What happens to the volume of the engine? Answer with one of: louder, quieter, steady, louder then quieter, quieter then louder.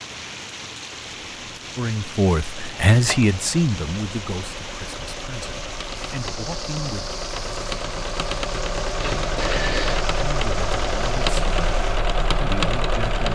louder.